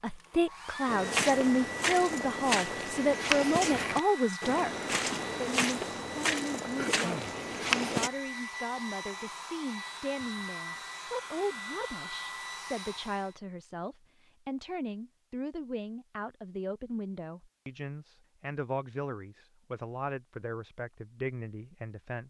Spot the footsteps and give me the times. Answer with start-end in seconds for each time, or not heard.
0.8-8.1.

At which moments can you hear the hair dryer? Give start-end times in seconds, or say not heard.
0.0-13.3.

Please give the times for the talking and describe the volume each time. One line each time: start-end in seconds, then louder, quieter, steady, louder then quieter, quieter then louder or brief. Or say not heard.
0.0-22.2 quieter.